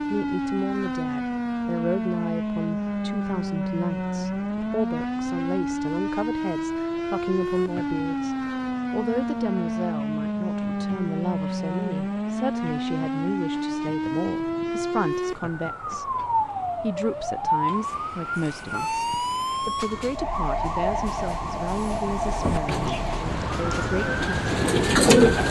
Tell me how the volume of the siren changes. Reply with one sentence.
The loudness of the siren stays about the same.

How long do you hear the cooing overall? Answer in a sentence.
You can hear the cooing for 3 seconds altogether.